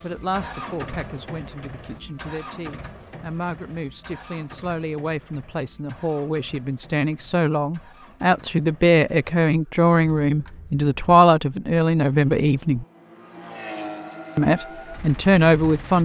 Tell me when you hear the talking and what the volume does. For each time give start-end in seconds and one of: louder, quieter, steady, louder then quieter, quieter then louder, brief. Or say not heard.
0.0-12.8 louder
14.3-15.9 brief.